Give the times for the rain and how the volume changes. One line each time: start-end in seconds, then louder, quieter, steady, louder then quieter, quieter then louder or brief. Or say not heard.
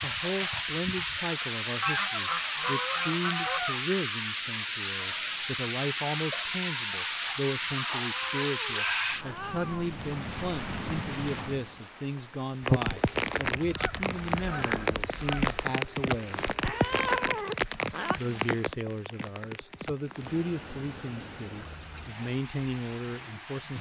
0.0-23.7 quieter.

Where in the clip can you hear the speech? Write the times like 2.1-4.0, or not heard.
0.0-16.5, 18.1-23.7.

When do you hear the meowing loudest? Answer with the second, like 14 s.
17 s.